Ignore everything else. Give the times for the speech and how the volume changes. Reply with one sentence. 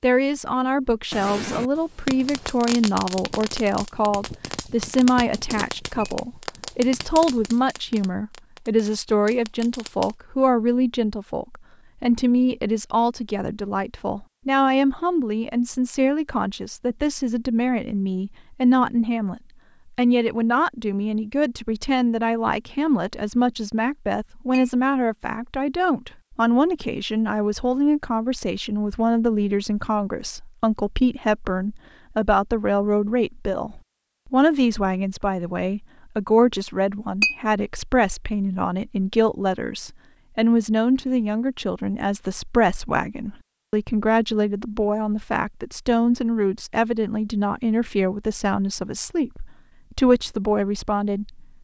The speech can be heard from 0.0 to 51.5 s, at a steady volume.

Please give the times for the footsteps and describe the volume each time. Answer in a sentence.
You can't hear the footsteps here.